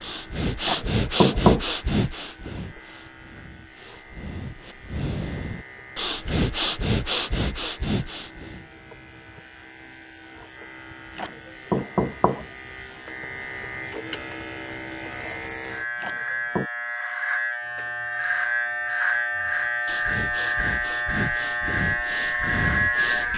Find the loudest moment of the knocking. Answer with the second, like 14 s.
1 s.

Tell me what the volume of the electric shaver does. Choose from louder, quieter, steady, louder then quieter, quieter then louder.
louder.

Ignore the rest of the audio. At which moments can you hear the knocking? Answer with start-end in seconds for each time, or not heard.
0.7-1.6, 11.2-12.4, 16.0-16.7.